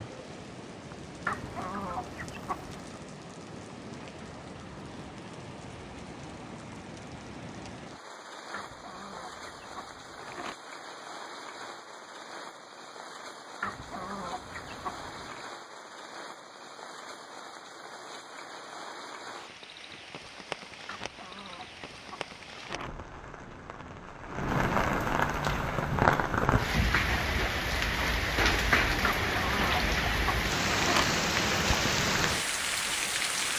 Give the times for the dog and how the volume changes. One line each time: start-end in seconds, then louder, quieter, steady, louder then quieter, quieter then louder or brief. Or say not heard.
not heard.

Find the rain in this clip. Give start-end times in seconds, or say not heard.
0.0-33.5.